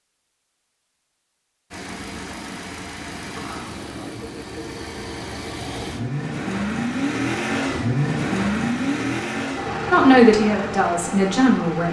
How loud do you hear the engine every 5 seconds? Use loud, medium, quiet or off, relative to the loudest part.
medium, loud, medium.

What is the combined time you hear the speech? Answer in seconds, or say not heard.
2 s.